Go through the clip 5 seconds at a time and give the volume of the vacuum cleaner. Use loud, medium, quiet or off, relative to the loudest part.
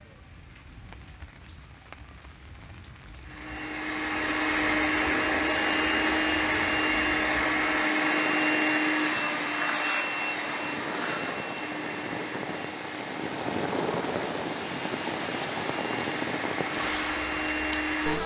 loud, loud, medium, medium.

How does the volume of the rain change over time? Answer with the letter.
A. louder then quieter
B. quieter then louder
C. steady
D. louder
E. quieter
D.